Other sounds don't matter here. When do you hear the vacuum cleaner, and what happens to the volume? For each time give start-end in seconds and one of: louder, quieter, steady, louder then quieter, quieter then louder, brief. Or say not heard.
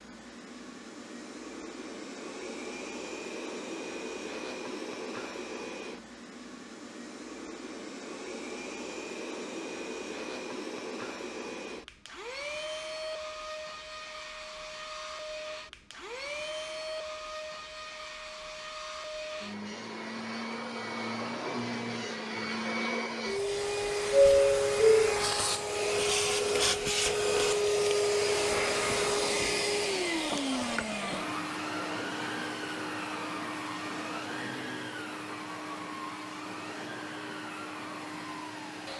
0.0-38.9 louder then quieter.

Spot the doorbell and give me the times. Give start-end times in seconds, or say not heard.
24.1-25.1.